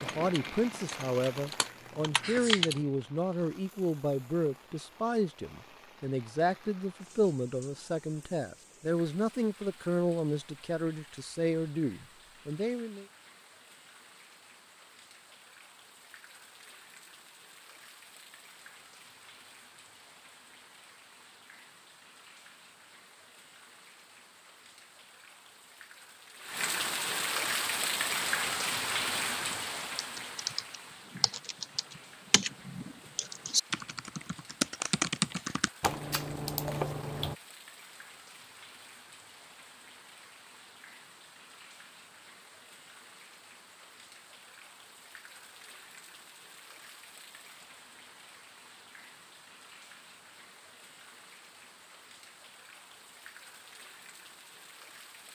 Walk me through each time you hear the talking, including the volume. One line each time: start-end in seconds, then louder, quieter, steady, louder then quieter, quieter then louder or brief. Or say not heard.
0.0-13.1 steady.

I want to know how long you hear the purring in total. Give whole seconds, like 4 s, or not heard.
not heard.